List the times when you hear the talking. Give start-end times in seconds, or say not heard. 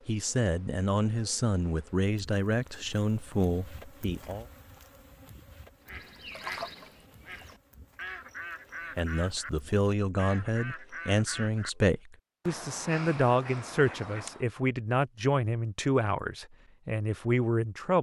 0.1-4.5, 8.9-17.9.